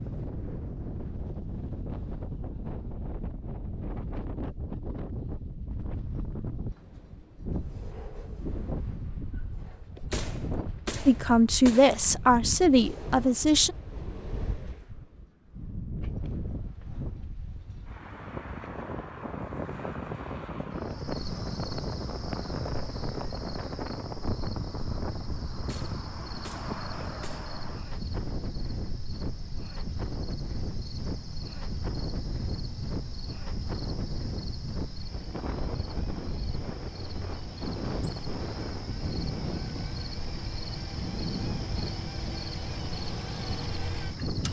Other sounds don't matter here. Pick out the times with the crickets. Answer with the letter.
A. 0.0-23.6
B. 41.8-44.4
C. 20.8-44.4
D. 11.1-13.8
C.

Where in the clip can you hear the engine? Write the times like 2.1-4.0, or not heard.
34.9-44.4.